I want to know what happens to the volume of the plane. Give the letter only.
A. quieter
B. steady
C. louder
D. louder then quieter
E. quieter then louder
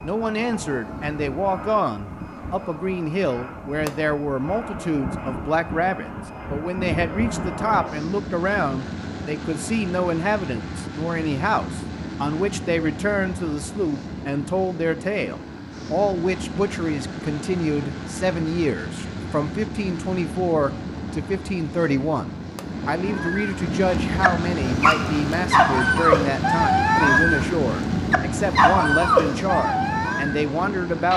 C.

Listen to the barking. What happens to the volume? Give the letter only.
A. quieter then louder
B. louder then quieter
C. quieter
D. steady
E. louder
E.